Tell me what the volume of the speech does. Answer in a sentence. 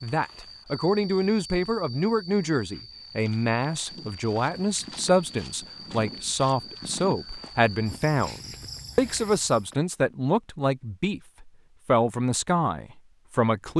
The loudness of the speech stays about the same.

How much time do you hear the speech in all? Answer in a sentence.
You can hear the speech for 14 seconds altogether.